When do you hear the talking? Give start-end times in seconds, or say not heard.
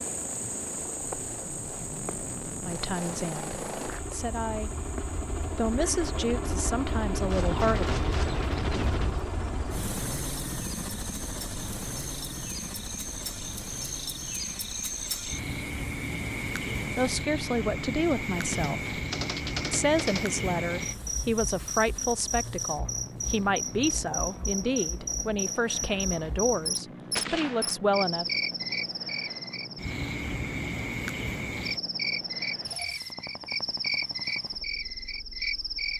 2.6-4.8, 5.5-8.0, 16.9-18.9, 19.7-28.2.